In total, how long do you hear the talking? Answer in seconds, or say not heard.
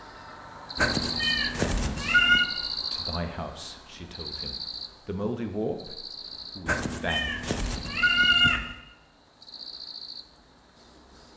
6 s.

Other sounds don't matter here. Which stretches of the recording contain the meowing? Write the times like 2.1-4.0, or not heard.
0.8-2.5, 6.7-8.8.